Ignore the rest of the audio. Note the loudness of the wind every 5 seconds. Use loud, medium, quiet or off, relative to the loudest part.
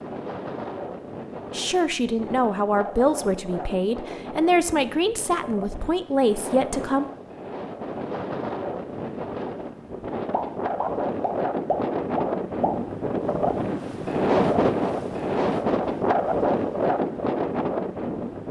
medium, medium, loud, loud.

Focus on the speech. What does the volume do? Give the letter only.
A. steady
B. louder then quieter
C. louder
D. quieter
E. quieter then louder
A.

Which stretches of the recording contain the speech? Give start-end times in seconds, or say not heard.
1.5-7.0.